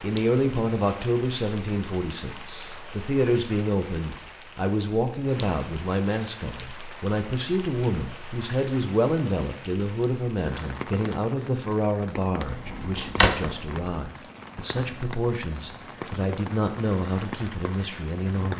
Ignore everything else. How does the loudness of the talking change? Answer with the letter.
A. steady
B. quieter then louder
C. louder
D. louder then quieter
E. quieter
A.